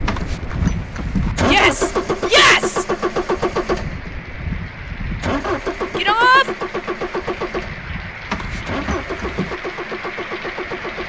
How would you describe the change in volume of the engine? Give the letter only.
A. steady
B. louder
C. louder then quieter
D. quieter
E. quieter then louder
D.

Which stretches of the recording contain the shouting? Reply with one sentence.
You can hear the shouting from 1.4 to 2.9 s and from 6.0 to 6.5 s.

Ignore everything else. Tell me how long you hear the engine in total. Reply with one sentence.
You can hear the engine for 11 seconds altogether.